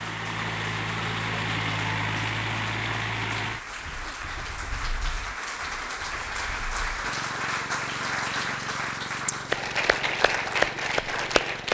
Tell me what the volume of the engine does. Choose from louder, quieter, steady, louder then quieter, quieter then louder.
quieter then louder.